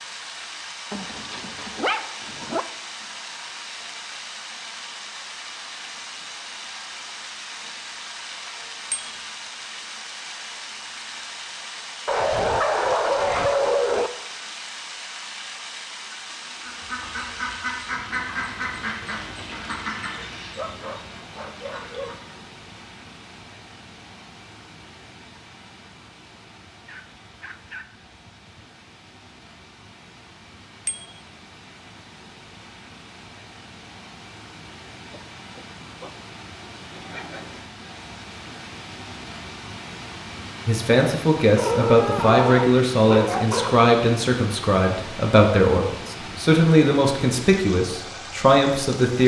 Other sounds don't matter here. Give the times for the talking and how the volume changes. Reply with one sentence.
The talking can be heard from 40.6 to 49.2 s, at a steady volume.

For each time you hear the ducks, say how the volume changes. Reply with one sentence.
The ducks can be heard from 16.6 to 22.4 s, getting quieter.